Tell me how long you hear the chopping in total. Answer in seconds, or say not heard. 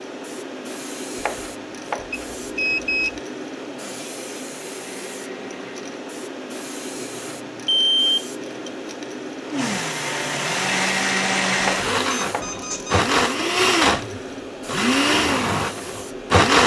2 s.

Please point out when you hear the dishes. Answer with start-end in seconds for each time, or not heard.
not heard.